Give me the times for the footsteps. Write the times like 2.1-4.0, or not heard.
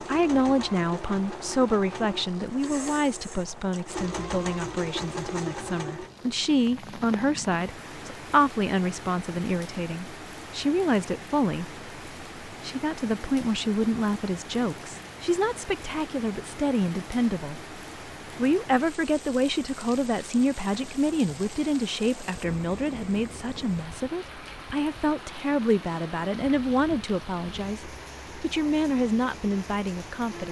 not heard.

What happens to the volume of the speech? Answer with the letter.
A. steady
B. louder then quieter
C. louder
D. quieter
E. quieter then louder
A.